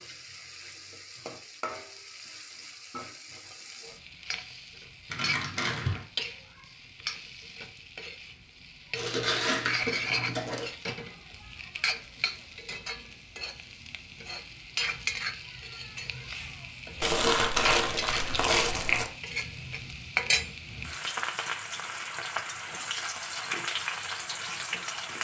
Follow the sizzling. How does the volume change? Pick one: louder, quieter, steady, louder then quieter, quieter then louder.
louder.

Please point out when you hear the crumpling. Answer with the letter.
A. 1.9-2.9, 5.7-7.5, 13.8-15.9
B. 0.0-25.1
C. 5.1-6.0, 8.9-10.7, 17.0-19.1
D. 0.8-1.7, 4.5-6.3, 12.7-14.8
C.